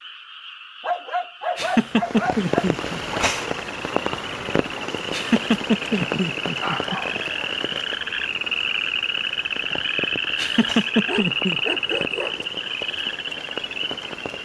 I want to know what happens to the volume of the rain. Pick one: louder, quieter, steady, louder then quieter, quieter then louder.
quieter.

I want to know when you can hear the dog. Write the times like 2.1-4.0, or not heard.
0.8-3.2, 6.0-7.5, 11.1-12.4.